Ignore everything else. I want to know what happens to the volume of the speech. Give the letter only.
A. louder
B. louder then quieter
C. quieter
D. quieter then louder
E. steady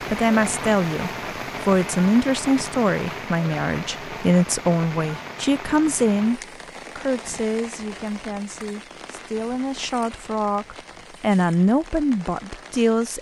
D.